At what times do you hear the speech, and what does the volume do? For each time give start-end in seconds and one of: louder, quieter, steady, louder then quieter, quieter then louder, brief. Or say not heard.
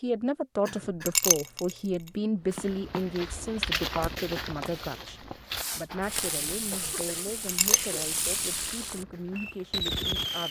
0.0-10.4 quieter.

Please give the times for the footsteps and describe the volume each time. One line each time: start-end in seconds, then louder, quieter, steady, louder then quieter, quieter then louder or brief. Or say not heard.
2.5-9.9 quieter.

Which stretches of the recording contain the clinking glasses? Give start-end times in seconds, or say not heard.
1.1-1.8, 7.5-8.2.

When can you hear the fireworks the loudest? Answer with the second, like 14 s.
10 s.